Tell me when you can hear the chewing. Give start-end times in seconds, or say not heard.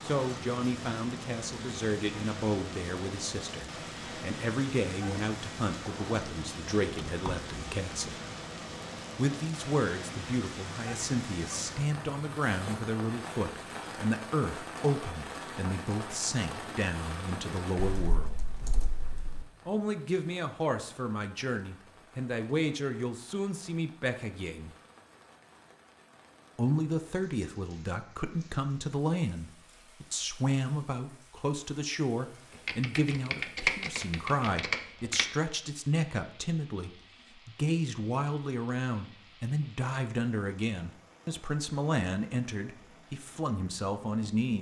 not heard.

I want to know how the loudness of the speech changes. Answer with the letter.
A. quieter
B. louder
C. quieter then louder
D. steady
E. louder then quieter
D.